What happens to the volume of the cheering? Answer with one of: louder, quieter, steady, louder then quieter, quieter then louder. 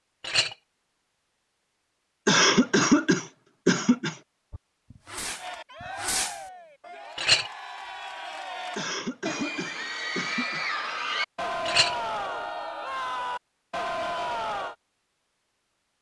louder.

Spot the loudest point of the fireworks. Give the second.
6 s.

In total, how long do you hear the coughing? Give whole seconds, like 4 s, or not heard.
4 s.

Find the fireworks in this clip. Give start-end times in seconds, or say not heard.
4.5-6.4.